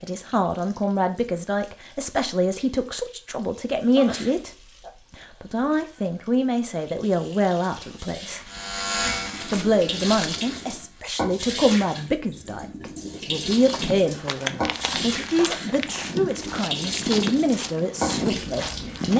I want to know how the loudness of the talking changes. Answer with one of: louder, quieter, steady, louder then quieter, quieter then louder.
steady.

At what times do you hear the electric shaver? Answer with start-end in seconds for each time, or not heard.
8.4-11.1.